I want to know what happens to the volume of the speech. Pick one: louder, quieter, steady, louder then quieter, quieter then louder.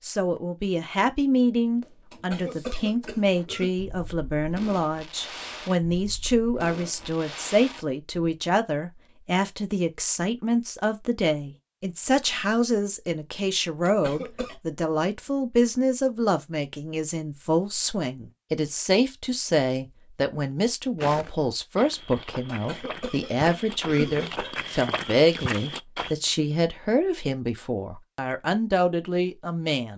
steady.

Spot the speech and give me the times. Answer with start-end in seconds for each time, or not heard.
0.0-29.9.